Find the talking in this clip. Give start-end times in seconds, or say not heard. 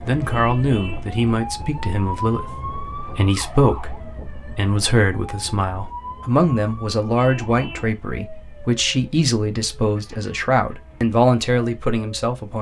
0.1-12.5.